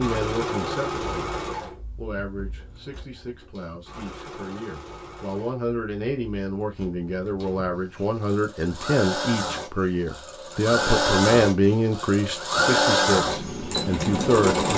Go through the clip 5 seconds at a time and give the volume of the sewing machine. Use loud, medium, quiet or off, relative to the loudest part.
medium, medium, loud.